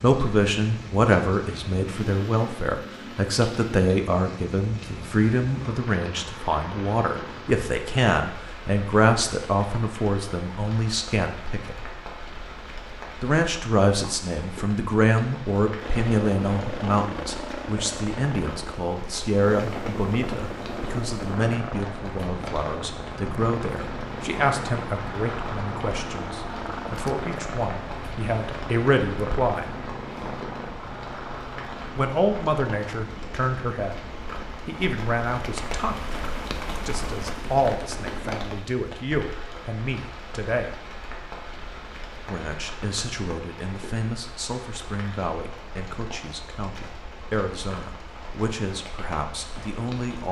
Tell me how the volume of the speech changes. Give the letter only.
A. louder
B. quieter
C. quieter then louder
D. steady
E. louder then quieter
B.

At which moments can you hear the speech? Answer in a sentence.
The speech can be heard from 0.0 to 11.8 s, from 13.2 to 29.8 s, from 31.9 to 40.9 s and from 42.2 to 50.2 s.